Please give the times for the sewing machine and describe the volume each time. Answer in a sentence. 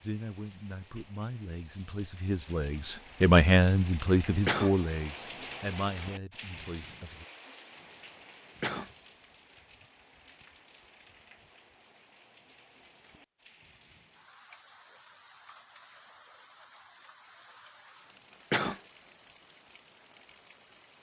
The sewing machine can't be heard in this clip.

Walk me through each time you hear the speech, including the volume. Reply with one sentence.
The speech can be heard from 0.0 to 7.2 s, getting louder then quieter.